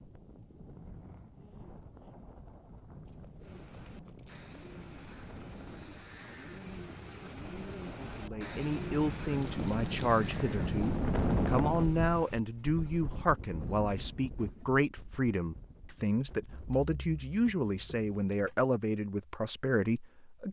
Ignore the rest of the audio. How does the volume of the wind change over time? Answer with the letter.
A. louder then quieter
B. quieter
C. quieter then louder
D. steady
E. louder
A.